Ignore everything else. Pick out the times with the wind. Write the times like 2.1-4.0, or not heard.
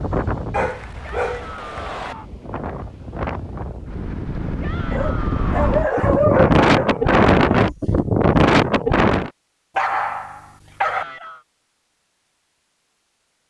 0.0-9.3.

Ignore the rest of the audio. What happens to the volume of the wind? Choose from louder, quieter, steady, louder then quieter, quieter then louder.
louder.